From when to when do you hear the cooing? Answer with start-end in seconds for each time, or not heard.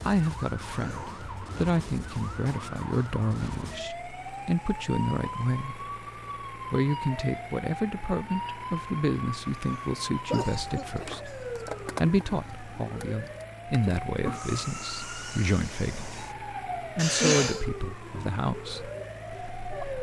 not heard.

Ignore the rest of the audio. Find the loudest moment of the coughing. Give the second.
17 s.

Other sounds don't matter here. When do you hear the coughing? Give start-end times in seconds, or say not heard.
0.7-1.2, 9.6-11.5, 16.9-17.6.